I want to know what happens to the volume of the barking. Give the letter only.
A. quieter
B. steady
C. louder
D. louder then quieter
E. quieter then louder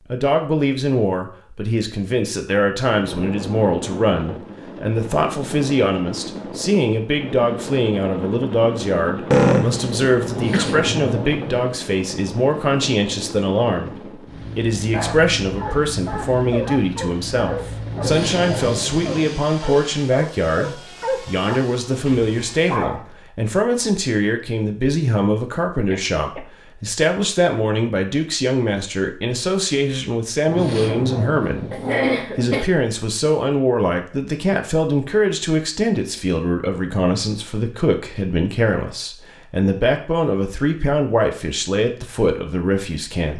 B.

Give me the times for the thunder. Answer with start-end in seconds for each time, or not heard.
10.3-11.7, 17.9-19.2, 30.4-31.9.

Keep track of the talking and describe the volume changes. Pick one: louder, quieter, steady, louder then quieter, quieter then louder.
steady.